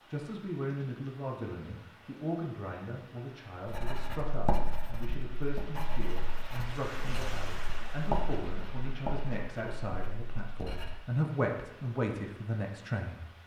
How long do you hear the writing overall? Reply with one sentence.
The writing can be heard for 7 seconds in total.